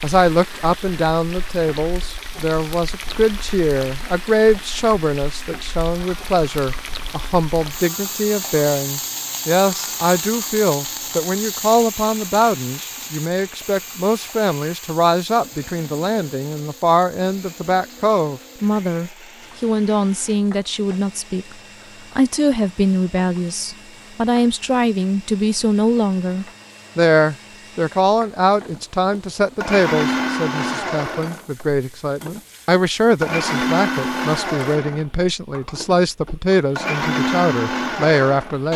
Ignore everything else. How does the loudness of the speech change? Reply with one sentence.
The loudness of the speech stays about the same.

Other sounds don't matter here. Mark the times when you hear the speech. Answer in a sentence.
The speech can be heard from 0.0 to 21.6 s and from 22.1 to 38.7 s.